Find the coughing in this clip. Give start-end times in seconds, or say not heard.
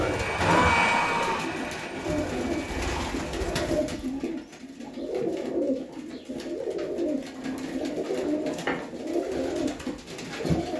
not heard.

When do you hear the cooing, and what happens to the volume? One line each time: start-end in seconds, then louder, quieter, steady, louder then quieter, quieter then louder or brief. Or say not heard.
0.0-10.7 steady.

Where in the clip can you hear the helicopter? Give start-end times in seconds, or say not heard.
0.0-3.6.